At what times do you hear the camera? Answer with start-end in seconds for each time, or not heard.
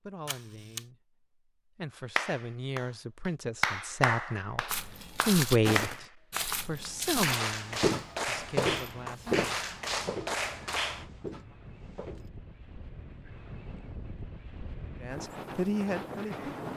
0.2-0.8.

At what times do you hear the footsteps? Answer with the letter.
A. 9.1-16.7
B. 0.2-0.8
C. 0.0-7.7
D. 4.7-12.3
D.